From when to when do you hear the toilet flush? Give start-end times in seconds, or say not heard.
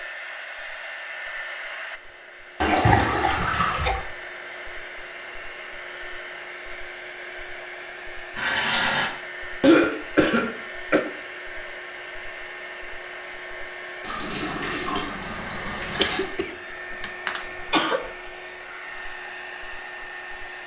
2.6-4.0, 8.3-9.1, 14.0-16.3.